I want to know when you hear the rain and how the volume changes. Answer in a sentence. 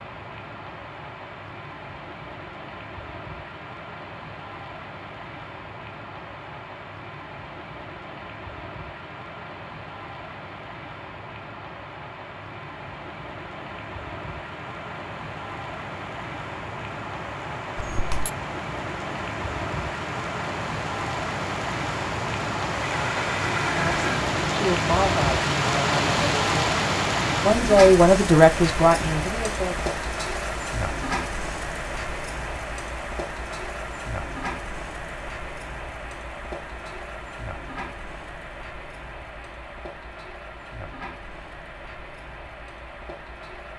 The rain can be heard from 0.0 to 43.7 s, getting louder then quieter.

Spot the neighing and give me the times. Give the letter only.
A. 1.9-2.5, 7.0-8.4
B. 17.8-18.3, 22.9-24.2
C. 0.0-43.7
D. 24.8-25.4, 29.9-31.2
B.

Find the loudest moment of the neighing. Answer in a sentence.
The loudest moment of the neighing is at 24 seconds.